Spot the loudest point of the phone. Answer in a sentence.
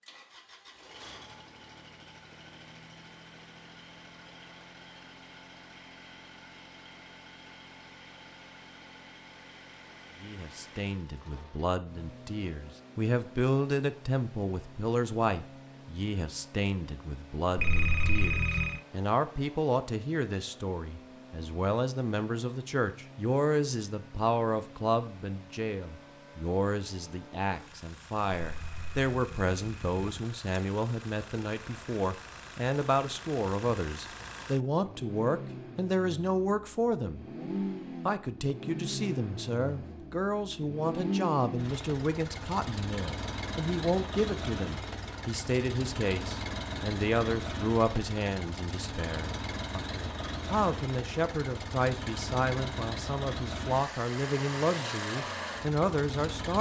The volume of the phone peaks at 18 seconds.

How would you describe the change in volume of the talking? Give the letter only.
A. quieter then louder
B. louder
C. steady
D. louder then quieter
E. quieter
C.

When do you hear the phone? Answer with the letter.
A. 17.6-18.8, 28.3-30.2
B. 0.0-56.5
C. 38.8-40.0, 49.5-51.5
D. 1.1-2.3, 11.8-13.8
A.